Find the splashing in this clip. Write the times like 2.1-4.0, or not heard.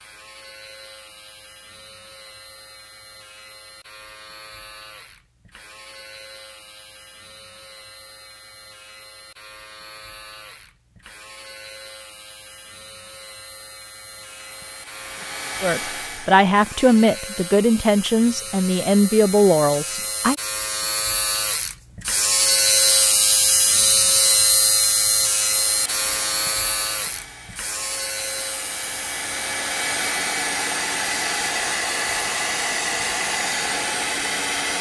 not heard.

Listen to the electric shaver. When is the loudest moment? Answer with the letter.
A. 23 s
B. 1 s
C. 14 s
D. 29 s
A.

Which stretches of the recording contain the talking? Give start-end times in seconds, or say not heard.
15.6-20.4.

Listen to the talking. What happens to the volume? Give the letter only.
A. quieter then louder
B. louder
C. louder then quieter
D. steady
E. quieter
D.